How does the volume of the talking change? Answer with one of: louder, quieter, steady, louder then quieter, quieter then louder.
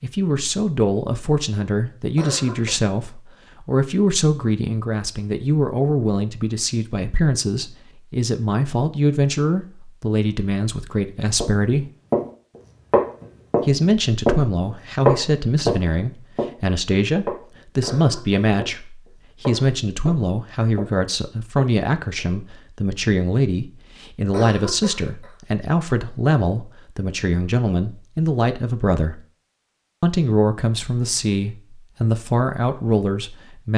steady.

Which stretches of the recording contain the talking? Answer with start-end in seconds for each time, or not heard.
0.0-11.8, 13.7-29.2, 30.0-33.7.